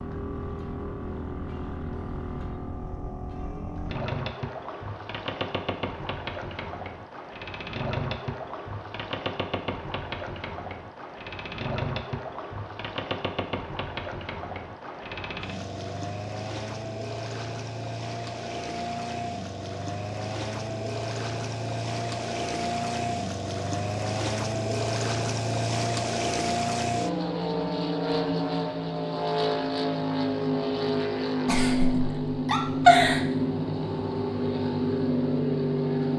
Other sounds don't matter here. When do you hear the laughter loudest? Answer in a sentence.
The volume of the laughter peaks at 33 seconds.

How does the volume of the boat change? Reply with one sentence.
The volume of the boat goes up.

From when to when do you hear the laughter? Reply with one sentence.
The laughter can be heard from 31.4 to 33.2 s.